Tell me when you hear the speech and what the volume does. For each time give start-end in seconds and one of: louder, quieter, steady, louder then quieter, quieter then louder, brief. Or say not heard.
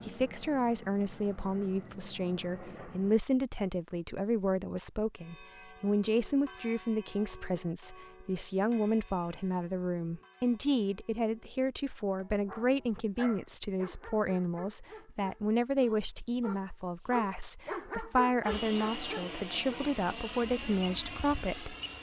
0.1-21.8 steady.